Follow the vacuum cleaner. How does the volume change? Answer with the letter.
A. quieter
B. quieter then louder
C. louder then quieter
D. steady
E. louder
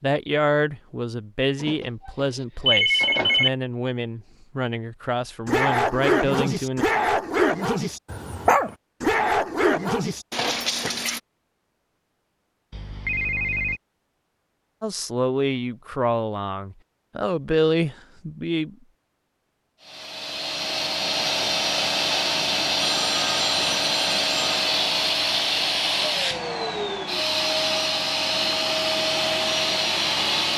D.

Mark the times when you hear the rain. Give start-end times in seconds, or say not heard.
not heard.